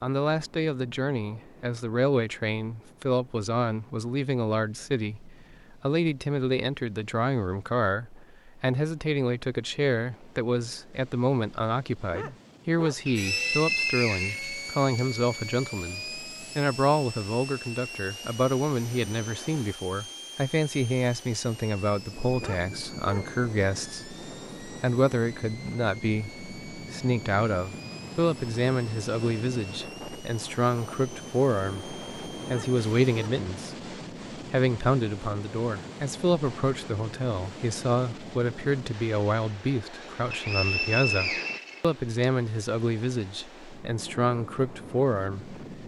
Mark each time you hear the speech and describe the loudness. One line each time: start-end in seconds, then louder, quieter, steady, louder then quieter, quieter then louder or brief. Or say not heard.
0.0-45.6 steady.